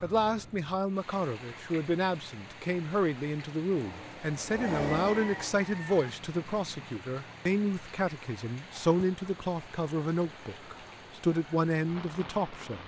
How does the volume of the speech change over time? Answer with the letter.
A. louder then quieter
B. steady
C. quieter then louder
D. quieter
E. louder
B.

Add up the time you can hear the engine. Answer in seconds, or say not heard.
3 s.